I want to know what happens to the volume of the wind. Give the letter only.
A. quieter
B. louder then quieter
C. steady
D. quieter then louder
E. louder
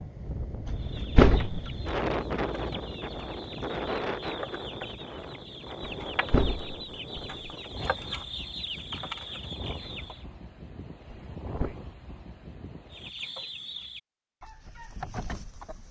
A.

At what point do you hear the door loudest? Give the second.
1 s.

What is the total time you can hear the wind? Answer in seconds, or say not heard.
13 s.